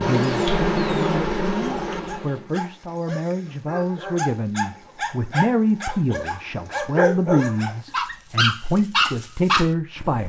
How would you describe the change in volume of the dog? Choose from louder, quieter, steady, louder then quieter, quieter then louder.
louder.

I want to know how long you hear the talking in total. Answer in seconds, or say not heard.
10 s.